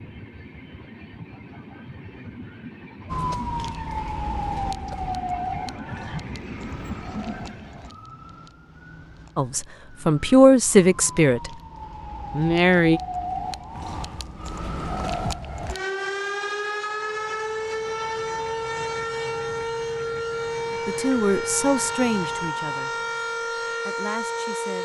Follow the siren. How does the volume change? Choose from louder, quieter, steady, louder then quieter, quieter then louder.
quieter then louder.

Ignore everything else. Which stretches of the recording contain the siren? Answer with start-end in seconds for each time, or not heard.
3.0-24.8.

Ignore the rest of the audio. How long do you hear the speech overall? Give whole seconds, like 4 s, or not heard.
6 s.